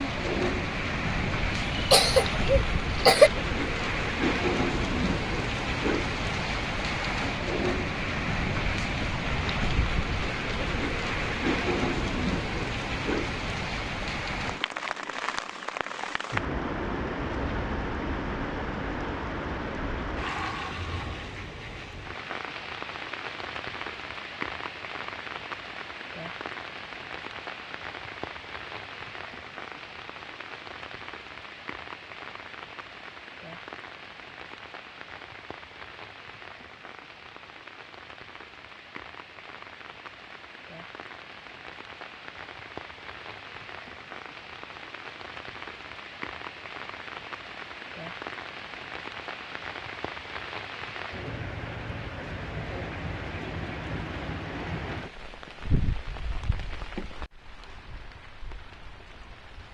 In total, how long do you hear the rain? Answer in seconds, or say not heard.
60 s.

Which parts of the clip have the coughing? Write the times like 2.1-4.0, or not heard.
1.8-3.3.